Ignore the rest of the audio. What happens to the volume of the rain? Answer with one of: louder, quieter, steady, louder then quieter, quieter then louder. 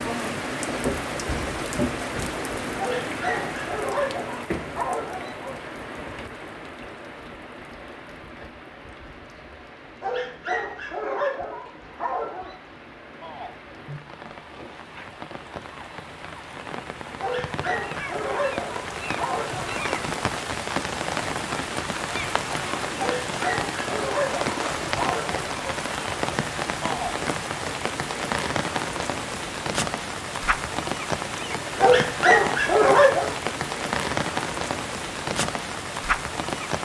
quieter then louder.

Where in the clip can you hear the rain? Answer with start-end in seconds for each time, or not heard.
0.0-36.8.